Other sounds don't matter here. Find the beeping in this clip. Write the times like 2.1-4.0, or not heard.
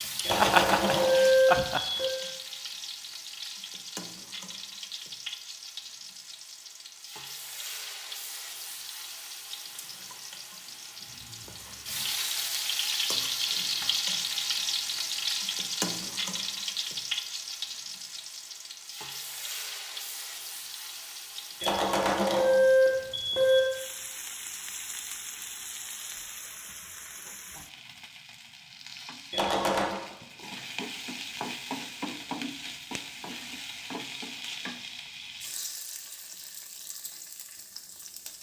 0.2-2.1, 21.6-23.6, 29.3-29.9.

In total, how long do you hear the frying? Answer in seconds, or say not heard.
38 s.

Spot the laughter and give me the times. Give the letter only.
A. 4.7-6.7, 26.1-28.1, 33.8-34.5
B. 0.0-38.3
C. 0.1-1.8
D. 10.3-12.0
C.